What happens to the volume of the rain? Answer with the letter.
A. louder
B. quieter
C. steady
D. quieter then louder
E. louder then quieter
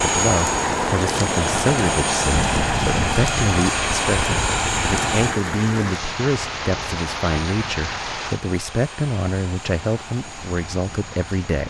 B.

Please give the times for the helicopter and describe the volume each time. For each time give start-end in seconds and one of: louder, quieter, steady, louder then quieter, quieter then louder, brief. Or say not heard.
0.0-11.6 quieter.